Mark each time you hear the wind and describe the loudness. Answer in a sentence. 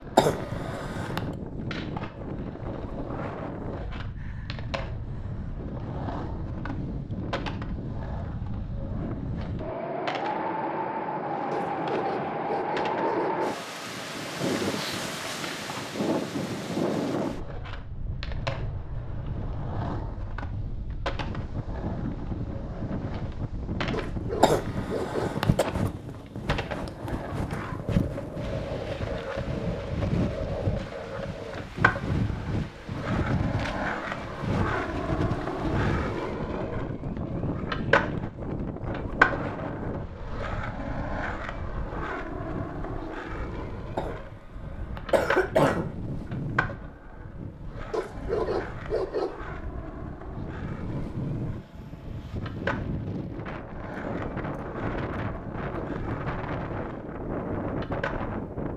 You can hear the wind from 0.0 to 58.7 s, at a steady volume.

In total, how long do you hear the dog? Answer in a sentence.
The dog can be heard for 5 seconds in total.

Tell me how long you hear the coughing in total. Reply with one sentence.
You can hear the coughing for 4 seconds altogether.